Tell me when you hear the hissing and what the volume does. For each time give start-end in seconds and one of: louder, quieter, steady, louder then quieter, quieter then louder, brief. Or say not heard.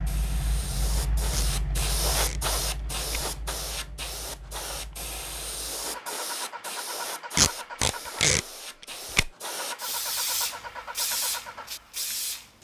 0.0-12.5 quieter then louder.